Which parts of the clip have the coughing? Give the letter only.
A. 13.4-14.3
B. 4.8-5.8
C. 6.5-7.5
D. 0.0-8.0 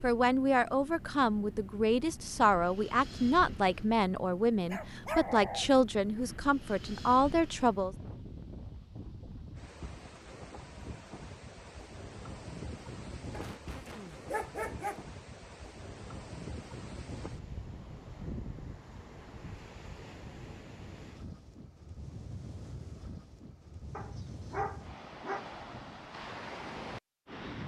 A.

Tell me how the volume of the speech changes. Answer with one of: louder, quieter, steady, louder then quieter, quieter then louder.
steady.